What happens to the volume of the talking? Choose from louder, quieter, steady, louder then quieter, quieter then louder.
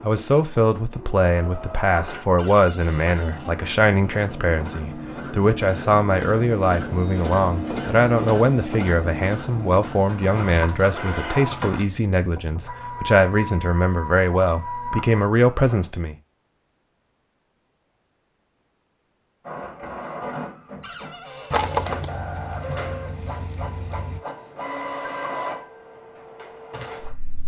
steady.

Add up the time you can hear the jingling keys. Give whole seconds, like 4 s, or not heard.
3 s.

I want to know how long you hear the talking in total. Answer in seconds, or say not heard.
16 s.